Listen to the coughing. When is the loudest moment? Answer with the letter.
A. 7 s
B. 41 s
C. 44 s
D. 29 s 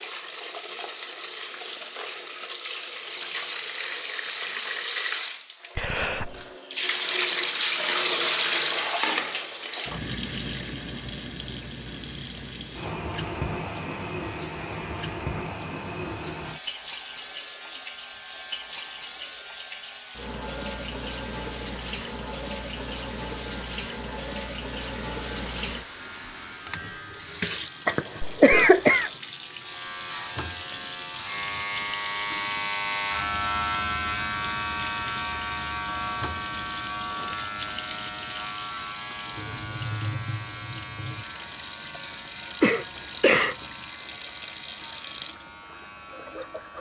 D.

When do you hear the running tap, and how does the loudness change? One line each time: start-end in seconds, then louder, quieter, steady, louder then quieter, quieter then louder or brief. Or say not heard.
0.0-46.7 quieter.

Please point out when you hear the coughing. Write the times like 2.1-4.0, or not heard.
5.8-6.5, 27.9-29.1, 42.6-43.5.